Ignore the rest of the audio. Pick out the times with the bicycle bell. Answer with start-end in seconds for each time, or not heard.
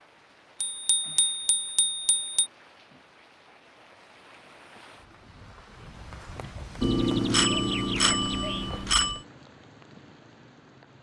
0.6-2.5, 6.8-9.2.